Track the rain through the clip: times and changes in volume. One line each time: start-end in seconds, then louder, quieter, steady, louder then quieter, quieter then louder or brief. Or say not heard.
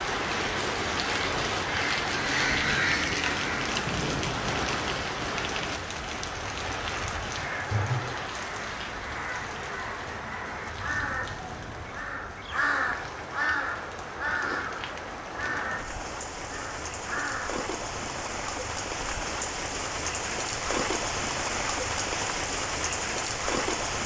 0.0-24.0 quieter then louder.